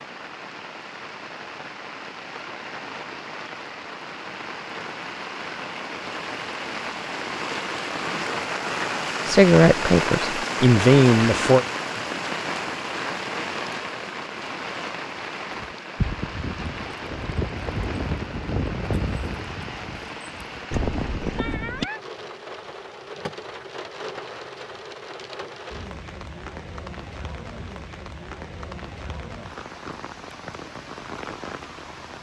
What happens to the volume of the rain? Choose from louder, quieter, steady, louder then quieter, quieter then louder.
louder then quieter.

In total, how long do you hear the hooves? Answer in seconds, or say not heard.
6 s.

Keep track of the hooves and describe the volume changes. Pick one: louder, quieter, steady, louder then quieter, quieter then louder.
quieter then louder.